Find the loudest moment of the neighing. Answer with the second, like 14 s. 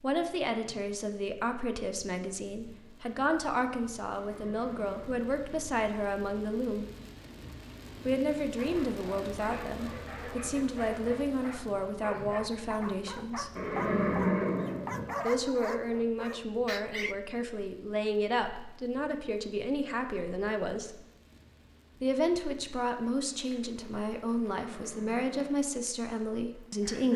14 s.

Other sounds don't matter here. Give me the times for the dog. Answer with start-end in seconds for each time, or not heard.
8.6-17.1.